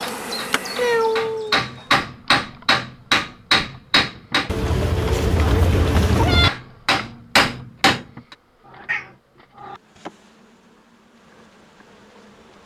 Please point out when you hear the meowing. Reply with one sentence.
You can hear the meowing from 0.8 to 1.9 s, from 4.5 to 6.5 s and from 8.7 to 9.8 s.